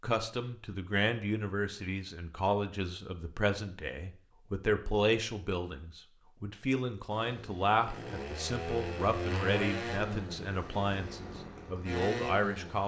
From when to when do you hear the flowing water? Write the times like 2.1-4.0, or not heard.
not heard.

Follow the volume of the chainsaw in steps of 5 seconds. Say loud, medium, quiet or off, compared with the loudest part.
off, loud, loud.